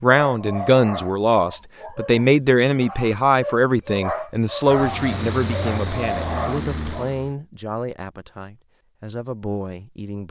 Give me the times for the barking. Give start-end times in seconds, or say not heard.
0.2-7.1.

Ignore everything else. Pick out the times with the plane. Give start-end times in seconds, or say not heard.
4.6-7.3.